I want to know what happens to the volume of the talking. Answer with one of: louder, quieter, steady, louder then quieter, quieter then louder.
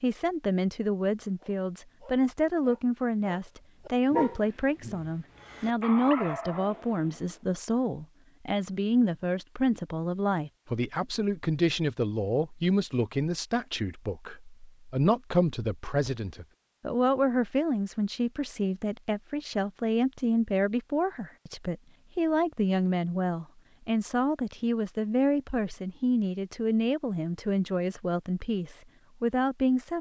steady.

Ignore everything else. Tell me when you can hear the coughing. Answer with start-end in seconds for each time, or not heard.
not heard.